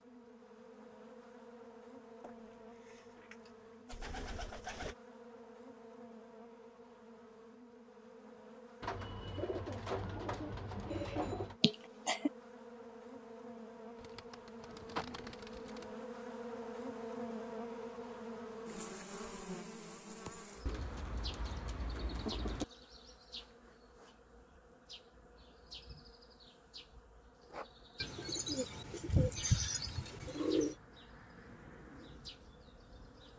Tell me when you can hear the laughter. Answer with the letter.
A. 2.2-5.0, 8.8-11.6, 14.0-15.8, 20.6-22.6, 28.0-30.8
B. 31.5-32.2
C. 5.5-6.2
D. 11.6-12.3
D.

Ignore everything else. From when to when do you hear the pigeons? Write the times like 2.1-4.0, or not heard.
2.2-5.0, 8.8-11.6, 14.0-15.8, 20.6-22.6, 28.0-30.8.